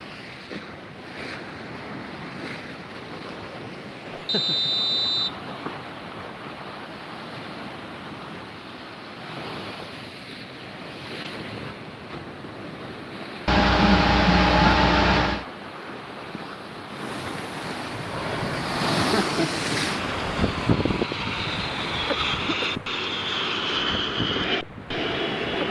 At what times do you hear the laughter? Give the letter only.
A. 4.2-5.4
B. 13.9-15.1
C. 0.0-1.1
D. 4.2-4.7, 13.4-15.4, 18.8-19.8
D.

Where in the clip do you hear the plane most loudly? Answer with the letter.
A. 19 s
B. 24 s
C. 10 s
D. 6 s
B.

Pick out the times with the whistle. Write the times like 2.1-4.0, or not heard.
4.2-5.4.